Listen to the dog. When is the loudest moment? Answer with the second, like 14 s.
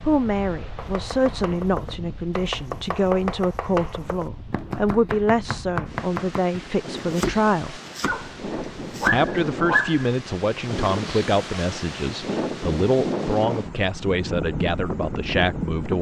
10 s.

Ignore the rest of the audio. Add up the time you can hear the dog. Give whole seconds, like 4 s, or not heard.
2 s.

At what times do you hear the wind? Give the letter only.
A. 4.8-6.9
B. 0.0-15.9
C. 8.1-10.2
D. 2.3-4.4
B.